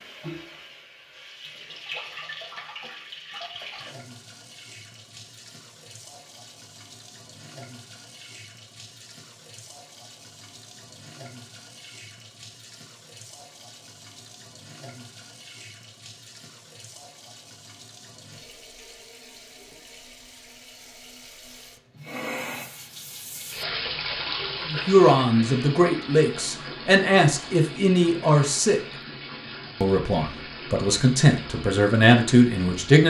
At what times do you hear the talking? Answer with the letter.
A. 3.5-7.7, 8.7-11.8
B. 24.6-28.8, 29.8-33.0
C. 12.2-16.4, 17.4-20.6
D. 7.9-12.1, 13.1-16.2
B.